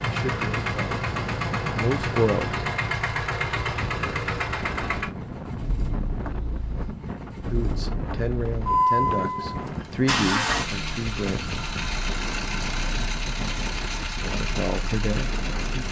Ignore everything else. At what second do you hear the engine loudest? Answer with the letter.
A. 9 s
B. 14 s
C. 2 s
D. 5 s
A.